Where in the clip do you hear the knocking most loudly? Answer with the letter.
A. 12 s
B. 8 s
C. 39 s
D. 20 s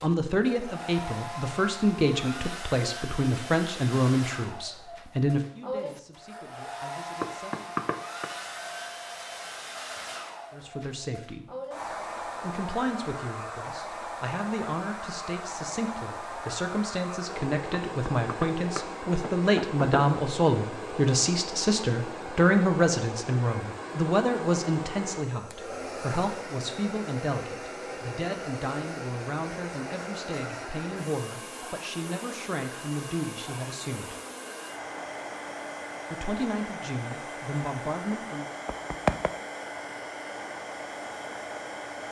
C.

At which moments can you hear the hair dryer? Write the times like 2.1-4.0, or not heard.
0.0-42.0.